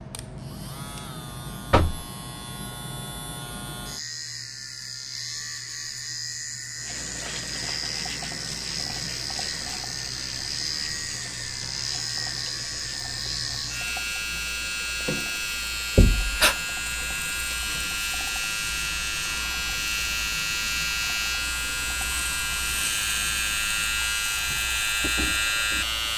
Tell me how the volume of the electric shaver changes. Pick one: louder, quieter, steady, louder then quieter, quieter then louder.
louder.